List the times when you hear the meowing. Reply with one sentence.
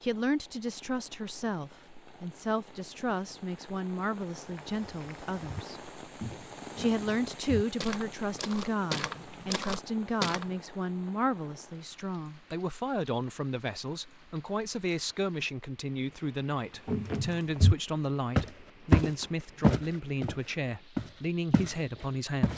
The meowing can't be heard in this clip.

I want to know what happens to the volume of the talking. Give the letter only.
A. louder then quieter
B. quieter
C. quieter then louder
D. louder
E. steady
E.